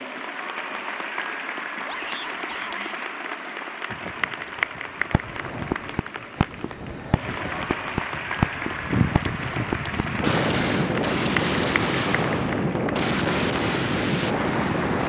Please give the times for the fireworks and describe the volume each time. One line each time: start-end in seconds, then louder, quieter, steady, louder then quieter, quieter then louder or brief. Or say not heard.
5.1-14.3 steady.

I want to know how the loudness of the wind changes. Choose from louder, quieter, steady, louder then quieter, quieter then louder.
louder.